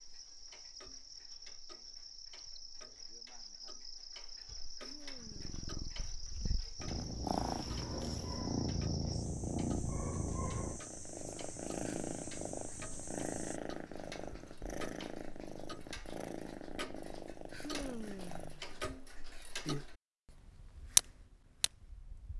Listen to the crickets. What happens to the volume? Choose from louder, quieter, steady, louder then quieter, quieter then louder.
steady.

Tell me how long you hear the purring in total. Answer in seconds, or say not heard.
15 s.